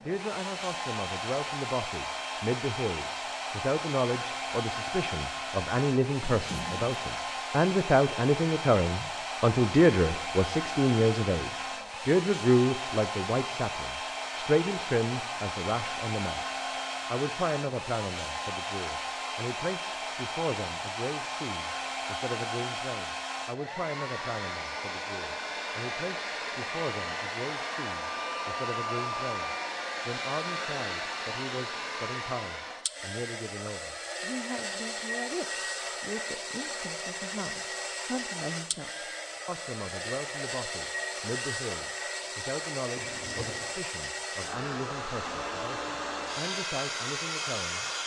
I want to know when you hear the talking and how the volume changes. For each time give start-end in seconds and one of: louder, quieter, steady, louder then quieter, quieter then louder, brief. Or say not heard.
0.0-47.9 quieter.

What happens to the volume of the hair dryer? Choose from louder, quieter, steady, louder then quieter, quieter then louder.
steady.